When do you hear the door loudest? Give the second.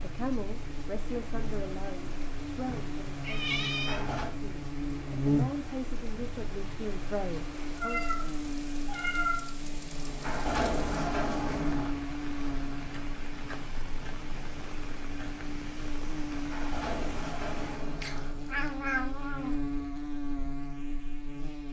11 s.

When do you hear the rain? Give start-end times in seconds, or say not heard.
0.0-17.8.